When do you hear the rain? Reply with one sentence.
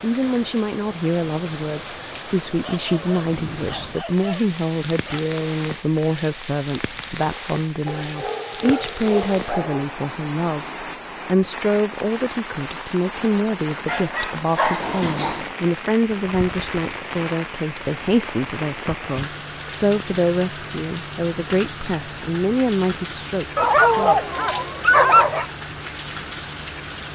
You can hear the rain from 0.0 to 27.1 s.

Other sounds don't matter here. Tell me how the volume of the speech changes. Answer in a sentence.
The loudness of the speech stays about the same.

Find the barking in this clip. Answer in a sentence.
The barking can be heard from 2.6 to 5.2 s, from 7.8 to 9.8 s, from 13.8 to 15.5 s and from 23.6 to 25.4 s.